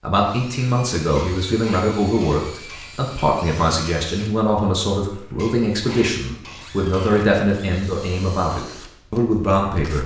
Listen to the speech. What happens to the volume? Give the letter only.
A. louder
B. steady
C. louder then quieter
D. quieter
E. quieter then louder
B.